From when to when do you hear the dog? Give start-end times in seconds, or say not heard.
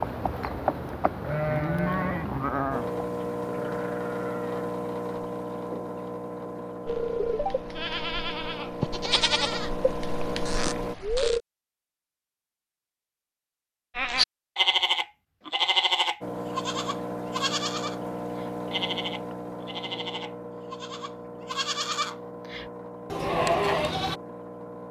not heard.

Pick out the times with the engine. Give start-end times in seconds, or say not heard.
2.7-10.9, 16.2-24.8.